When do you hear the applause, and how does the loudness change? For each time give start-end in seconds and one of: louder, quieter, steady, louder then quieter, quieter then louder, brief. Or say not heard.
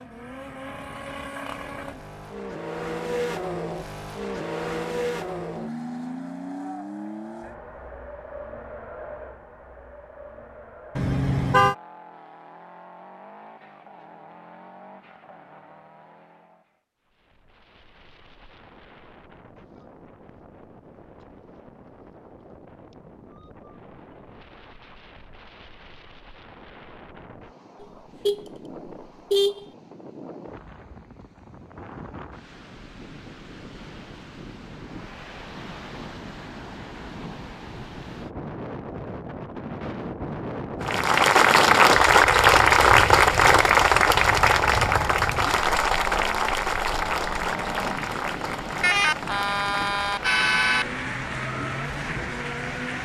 40.8-53.0 quieter.